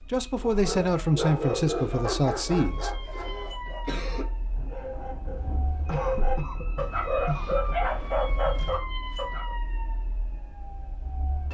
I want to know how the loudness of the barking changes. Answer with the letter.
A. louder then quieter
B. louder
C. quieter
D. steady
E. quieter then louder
E.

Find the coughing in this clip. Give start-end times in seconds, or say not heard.
3.1-4.2, 5.8-7.8.